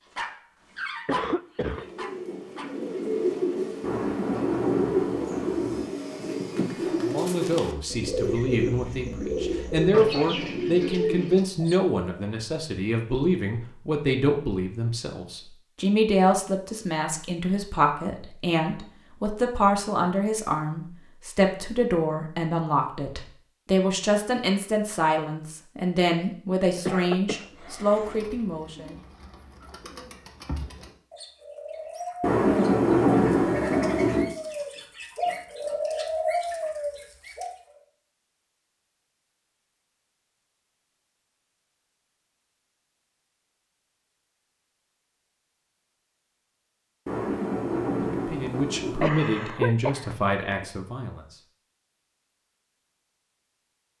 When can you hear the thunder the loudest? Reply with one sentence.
The volume of the thunder peaks at 33 seconds.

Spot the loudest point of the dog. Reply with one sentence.
The loudest moment of the dog is at 1 second.